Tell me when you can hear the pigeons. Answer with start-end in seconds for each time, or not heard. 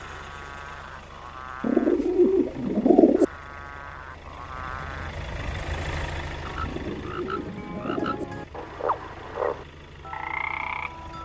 1.6-3.2, 6.6-8.2.